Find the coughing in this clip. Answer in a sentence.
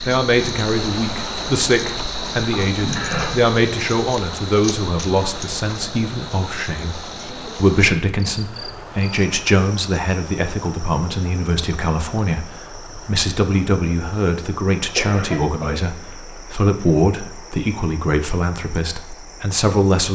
The coughing can be heard from 2.5 to 3.4 s and from 14.9 to 16.4 s.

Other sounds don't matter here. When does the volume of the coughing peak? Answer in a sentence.
The volume of the coughing peaks at 3 seconds.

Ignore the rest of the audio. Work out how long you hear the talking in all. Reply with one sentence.
You can hear the talking for 20 seconds altogether.